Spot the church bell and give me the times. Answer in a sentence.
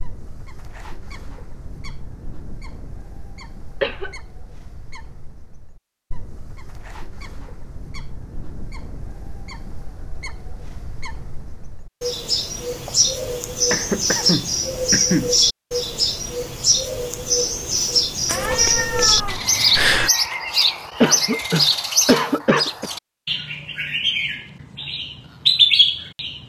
The church bell can't be heard in this clip.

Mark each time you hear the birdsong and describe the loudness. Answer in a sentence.
You can hear the birdsong from 0.0 to 26.4 s, getting louder.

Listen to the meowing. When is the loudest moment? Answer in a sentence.
The loudest moment of the meowing is at 20 seconds.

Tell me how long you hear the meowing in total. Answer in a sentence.
The meowing can be heard for 2 seconds in total.